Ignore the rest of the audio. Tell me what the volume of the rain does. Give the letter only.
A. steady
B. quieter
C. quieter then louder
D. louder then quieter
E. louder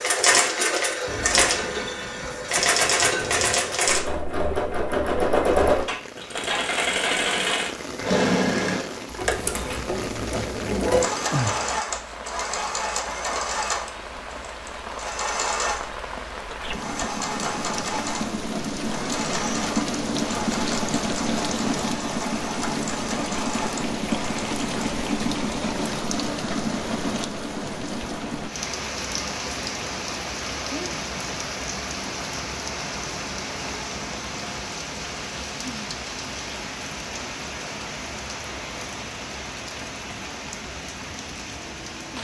D.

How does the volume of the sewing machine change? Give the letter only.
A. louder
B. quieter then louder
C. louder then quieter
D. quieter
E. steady
D.